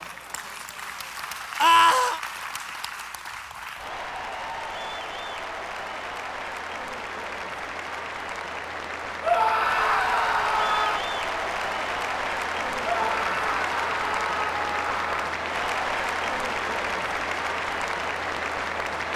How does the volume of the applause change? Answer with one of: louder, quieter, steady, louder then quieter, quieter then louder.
louder.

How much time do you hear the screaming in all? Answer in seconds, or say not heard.
5 s.